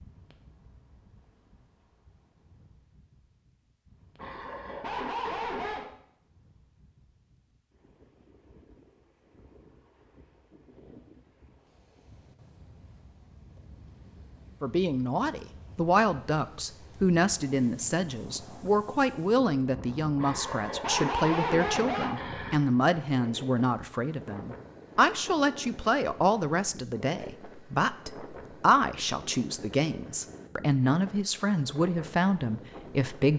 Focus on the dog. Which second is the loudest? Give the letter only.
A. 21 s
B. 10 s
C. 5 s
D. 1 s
A.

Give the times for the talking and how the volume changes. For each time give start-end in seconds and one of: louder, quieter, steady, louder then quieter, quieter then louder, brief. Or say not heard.
14.6-33.3 steady.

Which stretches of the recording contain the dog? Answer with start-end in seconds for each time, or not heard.
4.2-5.9, 20.1-22.6.